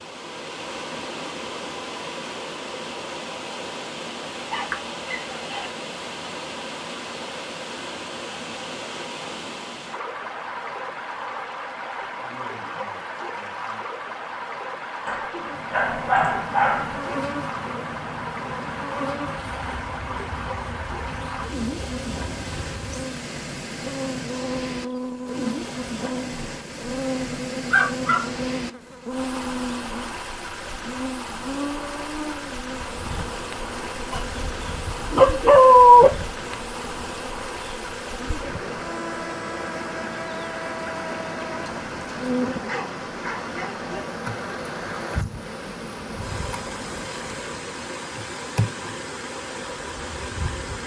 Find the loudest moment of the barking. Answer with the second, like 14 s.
36 s.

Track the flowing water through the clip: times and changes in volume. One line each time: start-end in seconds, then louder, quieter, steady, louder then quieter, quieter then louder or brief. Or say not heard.
0.0-50.8 steady.